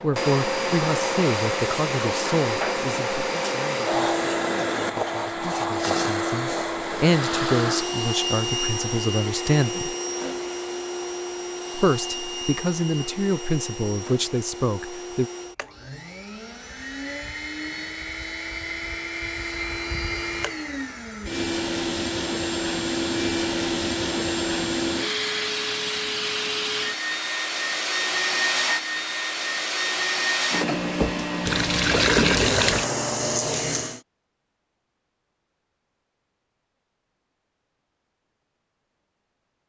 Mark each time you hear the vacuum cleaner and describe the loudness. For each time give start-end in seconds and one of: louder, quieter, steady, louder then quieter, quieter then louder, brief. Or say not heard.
0.0-34.0 quieter then louder.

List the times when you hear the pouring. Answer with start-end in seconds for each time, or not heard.
31.4-32.9.